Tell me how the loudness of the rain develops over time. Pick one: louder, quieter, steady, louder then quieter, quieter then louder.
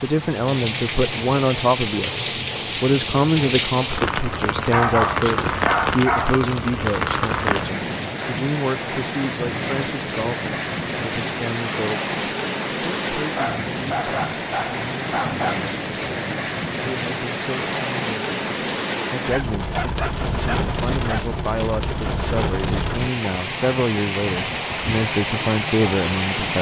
steady.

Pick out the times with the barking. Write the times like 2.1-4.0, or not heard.
4.7-6.4, 13.3-15.6, 19.3-21.2.